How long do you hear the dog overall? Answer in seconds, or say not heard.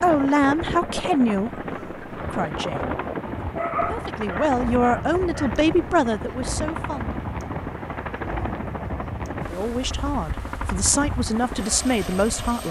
2 s.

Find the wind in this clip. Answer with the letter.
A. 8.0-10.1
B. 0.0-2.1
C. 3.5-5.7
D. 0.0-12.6
D.